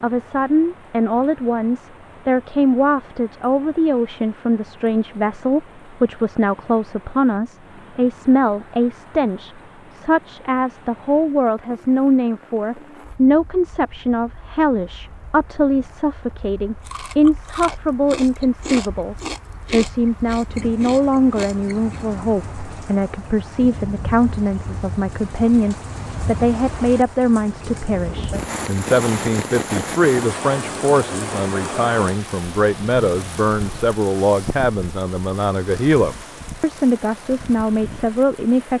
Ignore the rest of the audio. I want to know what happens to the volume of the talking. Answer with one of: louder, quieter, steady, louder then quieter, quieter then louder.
steady.